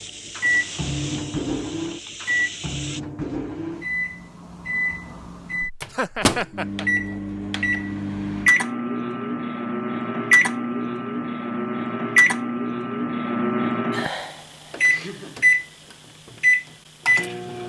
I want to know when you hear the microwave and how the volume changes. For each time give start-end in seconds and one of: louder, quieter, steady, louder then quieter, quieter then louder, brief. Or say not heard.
0.3-17.6 louder.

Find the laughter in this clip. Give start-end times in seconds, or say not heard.
5.9-6.8, 14.8-15.6.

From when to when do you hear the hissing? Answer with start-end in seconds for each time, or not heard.
0.0-3.0.